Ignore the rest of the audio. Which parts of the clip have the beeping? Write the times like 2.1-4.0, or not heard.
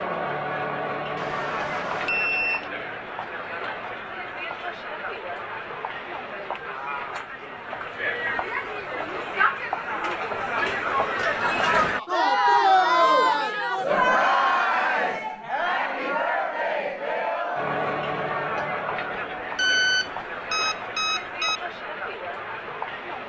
1.1-2.7, 19.6-21.6.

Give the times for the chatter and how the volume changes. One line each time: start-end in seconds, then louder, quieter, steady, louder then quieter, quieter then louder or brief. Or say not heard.
0.0-23.2 louder then quieter.